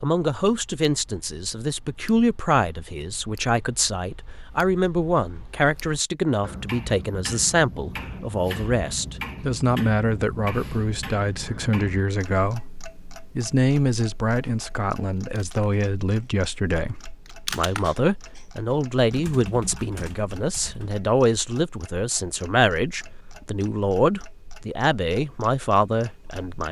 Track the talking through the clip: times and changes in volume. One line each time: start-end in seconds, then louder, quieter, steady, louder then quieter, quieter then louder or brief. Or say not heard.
0.0-26.6 steady.